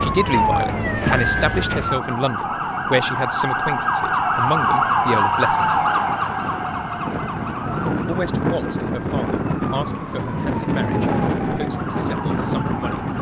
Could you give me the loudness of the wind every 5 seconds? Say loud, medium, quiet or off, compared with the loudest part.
quiet, loud, loud.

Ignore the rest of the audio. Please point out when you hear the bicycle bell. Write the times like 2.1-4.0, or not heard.
1.1-1.7.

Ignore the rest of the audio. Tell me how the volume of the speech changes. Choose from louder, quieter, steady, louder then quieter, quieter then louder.
quieter.